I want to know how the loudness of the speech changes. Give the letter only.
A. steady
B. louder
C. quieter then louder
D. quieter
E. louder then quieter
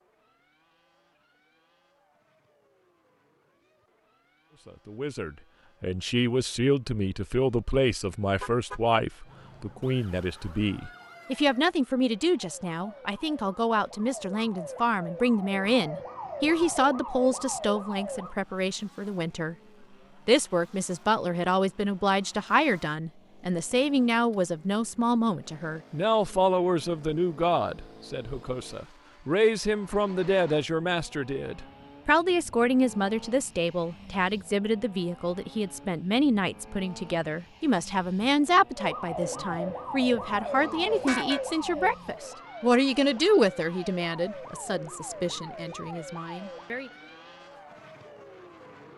A.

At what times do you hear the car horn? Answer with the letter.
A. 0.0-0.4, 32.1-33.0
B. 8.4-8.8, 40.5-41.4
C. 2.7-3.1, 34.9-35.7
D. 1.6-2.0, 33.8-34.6
B.